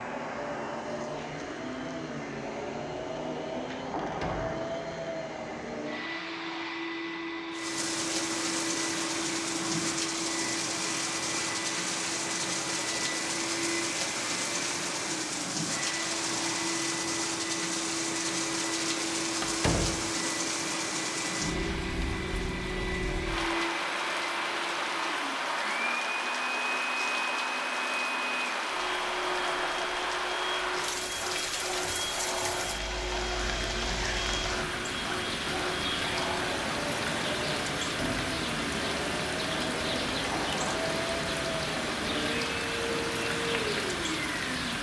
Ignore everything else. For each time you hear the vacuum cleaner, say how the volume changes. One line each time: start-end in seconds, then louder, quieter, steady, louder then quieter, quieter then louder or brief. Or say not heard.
0.0-44.7 steady.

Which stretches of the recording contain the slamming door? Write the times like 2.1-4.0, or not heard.
4.0-4.6, 19.4-20.1, 37.8-38.4.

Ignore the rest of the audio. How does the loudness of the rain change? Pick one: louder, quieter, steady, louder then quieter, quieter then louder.
steady.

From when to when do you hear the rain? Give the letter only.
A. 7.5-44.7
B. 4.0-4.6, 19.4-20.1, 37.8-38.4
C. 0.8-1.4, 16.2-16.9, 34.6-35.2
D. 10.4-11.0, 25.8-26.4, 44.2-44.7
A.